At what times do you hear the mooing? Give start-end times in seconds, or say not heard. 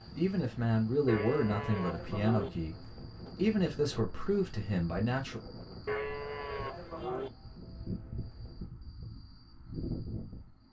1.1-2.5, 5.8-7.3.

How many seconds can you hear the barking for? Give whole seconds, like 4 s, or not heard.
not heard.